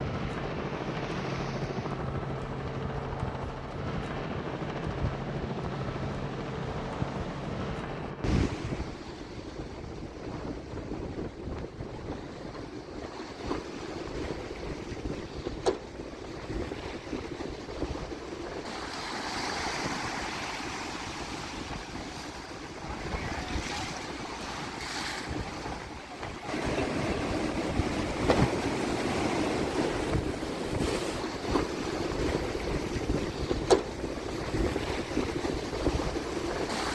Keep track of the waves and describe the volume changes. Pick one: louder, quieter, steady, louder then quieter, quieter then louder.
louder.